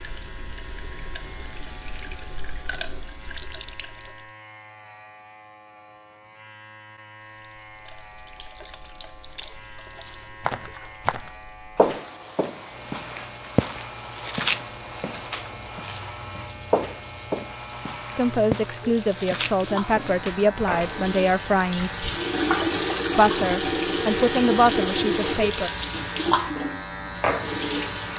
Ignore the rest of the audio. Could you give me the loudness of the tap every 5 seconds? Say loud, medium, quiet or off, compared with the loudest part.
quiet, quiet, quiet, quiet, loud, loud.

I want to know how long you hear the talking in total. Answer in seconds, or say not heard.
6 s.